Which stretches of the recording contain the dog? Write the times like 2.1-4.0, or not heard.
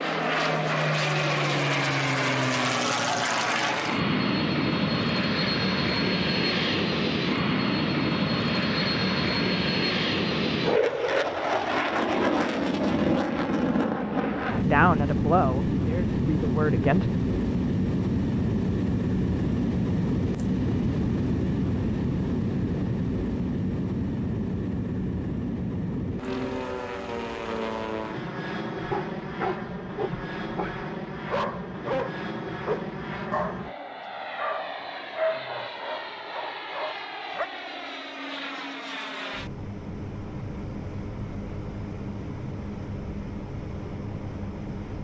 28.8-37.5.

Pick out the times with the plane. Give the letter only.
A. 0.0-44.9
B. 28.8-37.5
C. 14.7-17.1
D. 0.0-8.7
A.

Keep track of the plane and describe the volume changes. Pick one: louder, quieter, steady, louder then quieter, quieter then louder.
quieter.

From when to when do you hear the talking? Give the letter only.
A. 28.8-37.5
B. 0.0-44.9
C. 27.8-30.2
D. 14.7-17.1
D.